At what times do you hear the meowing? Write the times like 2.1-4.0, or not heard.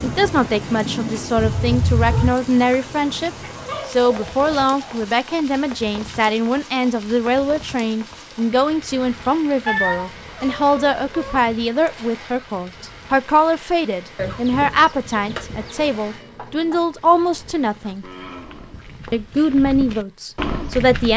1.4-2.3, 9.7-11.4, 15.2-16.8.